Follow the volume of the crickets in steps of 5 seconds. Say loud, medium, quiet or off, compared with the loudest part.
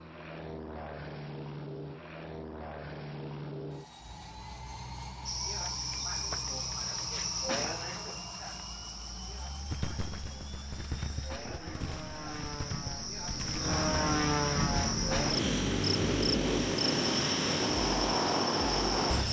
off, loud, medium, loud.